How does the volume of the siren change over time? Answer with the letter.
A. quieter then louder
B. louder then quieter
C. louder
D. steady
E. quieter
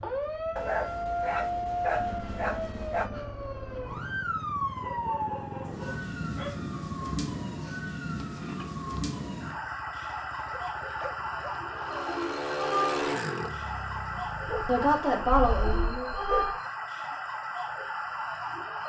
D.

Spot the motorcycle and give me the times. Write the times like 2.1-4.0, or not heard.
0.0-15.0.